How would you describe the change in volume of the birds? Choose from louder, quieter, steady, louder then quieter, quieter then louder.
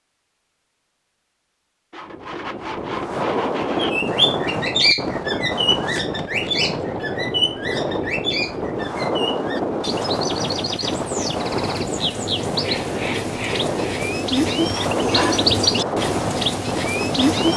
quieter then louder.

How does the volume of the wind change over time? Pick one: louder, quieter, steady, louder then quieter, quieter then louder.
steady.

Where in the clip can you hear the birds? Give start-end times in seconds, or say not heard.
3.8-17.5.